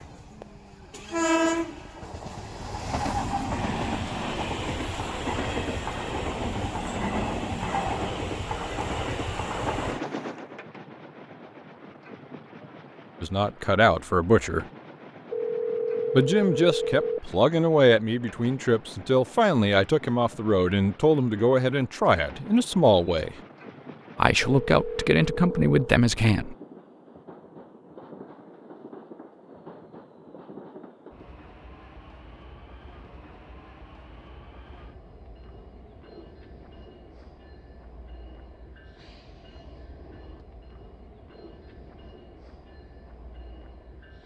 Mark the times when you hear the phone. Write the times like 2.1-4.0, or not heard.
15.3-17.2, 24.4-25.7.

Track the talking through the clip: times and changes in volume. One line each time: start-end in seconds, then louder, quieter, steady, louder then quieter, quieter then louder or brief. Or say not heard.
13.2-14.7 brief
16.1-23.4 steady
24.1-26.6 brief.